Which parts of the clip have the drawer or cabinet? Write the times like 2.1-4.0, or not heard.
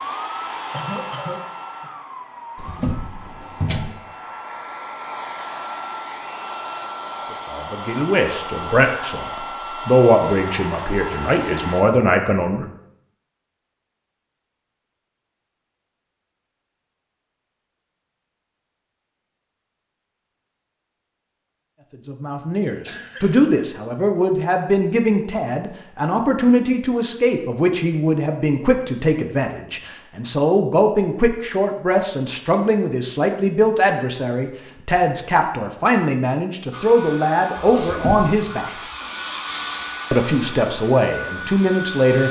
2.5-4.0, 37.8-38.3.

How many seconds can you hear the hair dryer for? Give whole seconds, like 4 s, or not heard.
17 s.